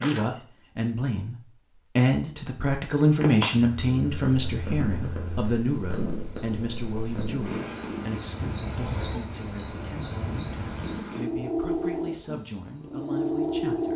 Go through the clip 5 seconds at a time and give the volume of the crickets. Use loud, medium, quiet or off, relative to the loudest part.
medium, loud, loud.